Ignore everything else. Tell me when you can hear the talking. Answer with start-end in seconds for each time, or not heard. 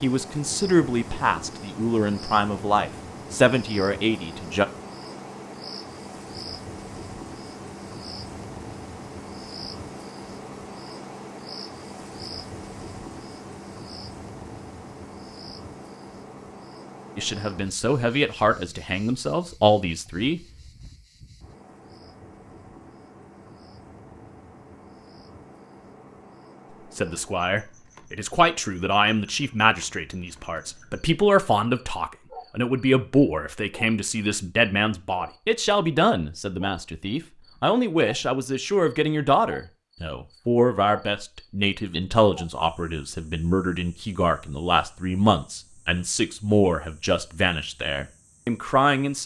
0.0-4.7, 17.1-20.4, 26.9-49.2.